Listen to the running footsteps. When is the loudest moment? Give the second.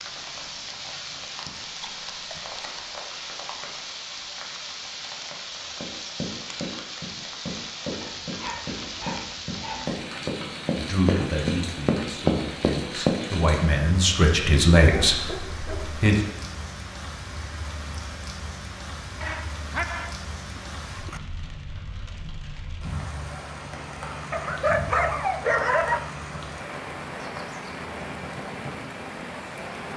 12 s.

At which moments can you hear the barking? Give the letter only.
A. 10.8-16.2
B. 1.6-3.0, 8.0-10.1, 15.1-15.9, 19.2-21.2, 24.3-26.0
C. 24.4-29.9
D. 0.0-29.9
B.